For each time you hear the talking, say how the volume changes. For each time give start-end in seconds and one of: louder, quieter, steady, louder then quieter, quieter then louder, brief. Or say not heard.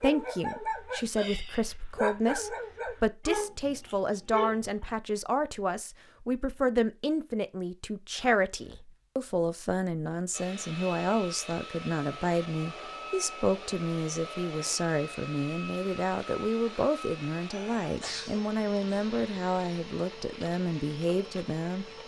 0.0-21.9 steady.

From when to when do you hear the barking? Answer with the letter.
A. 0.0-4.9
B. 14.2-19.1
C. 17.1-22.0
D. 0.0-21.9
A.